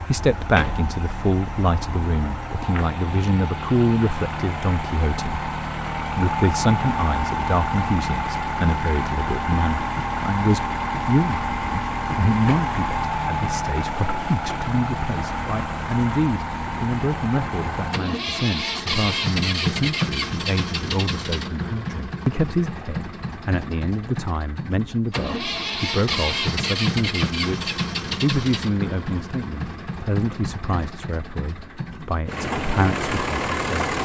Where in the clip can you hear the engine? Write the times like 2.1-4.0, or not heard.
0.0-34.0.